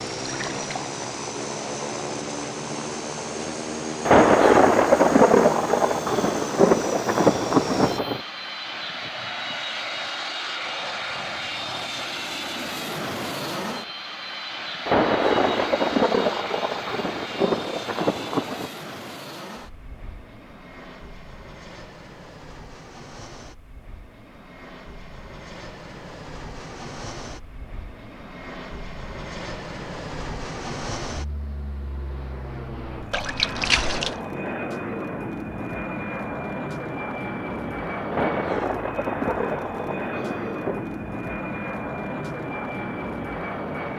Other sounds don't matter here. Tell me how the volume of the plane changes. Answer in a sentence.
The volume of the plane goes down, then up.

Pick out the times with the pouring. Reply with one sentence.
The pouring can be heard from 0.2 to 0.9 s and from 33.1 to 34.2 s.